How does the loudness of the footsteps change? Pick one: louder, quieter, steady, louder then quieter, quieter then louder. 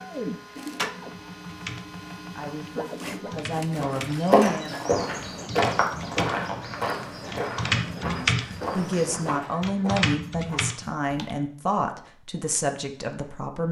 quieter.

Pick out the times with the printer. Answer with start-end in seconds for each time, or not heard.
0.0-9.4.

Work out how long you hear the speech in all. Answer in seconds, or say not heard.
8 s.